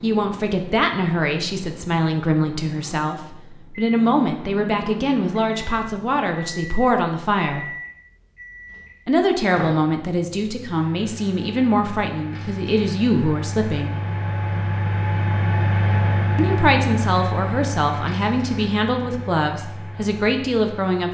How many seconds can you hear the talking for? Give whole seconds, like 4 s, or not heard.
17 s.